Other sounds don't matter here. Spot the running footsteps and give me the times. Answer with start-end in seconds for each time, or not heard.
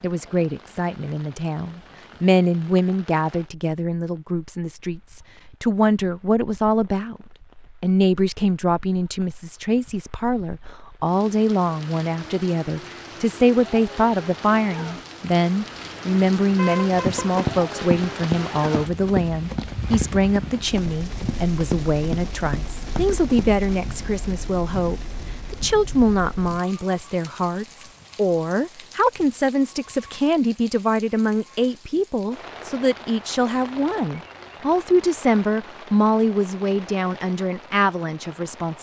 16.9-23.9.